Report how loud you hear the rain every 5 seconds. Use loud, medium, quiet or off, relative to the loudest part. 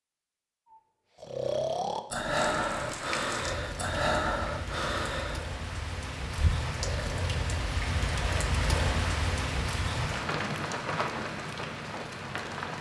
medium, loud, loud.